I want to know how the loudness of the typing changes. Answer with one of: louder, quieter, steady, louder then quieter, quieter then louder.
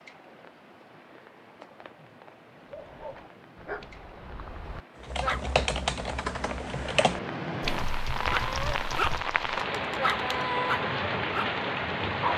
quieter.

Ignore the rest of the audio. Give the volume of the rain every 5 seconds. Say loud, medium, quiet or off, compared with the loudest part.
quiet, loud, loud.